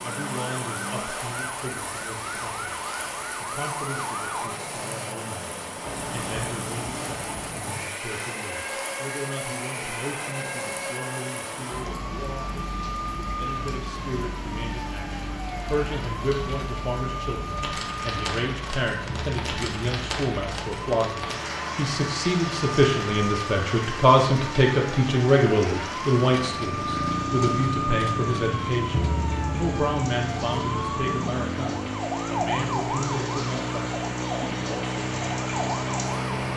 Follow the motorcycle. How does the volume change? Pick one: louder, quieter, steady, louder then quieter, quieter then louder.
steady.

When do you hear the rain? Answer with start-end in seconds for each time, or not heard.
0.0-36.5.